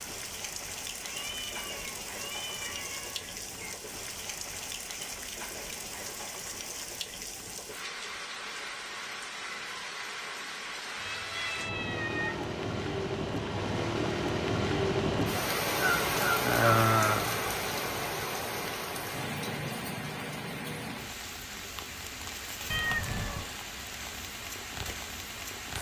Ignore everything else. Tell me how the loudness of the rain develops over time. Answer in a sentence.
The loudness of the rain goes up, then down.